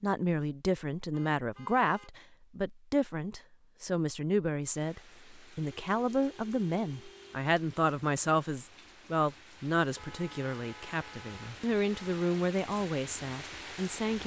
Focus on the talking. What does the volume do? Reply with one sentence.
The volume of the talking stays about the same.